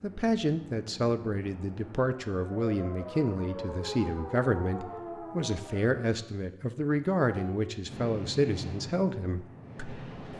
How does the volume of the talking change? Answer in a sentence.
The volume of the talking stays about the same.